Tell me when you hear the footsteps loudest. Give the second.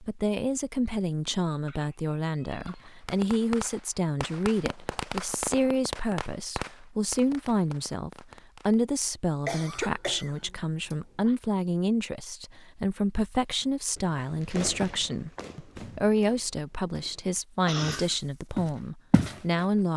19 s.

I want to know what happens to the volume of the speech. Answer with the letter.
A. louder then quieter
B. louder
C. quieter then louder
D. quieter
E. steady
E.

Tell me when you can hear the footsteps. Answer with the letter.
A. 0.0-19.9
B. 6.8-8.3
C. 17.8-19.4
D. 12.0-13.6
C.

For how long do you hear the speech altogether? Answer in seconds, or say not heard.
20 s.